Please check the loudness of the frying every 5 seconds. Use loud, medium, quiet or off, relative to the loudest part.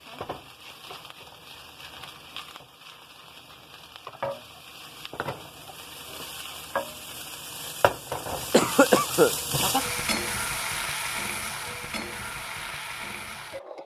medium, loud, loud.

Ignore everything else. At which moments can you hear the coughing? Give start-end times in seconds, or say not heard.
8.5-9.3.